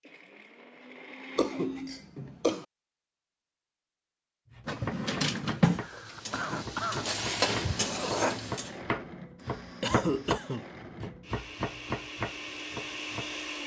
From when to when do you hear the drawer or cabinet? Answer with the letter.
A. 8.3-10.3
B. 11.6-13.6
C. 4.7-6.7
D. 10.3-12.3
C.